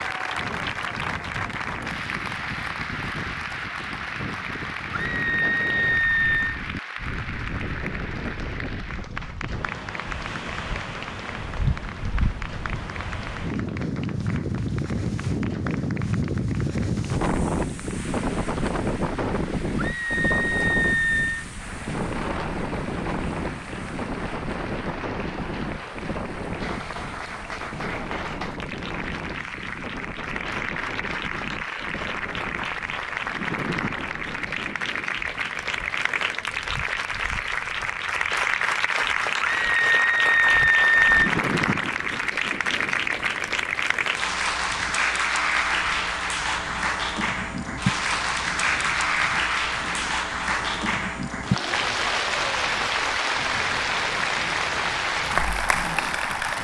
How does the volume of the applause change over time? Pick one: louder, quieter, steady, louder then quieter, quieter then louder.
quieter then louder.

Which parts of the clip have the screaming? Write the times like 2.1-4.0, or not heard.
5.0-6.5, 19.8-21.4, 39.6-41.3.